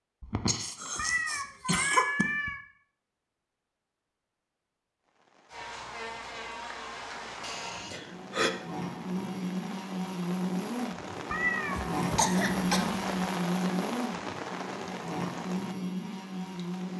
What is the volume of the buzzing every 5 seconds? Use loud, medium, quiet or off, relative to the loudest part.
off, medium, loud, loud.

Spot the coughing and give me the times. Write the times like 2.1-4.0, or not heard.
0.2-2.2, 7.4-8.5, 11.9-13.0.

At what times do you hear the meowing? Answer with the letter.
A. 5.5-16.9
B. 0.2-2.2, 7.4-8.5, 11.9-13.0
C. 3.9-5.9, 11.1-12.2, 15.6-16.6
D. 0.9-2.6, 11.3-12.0
D.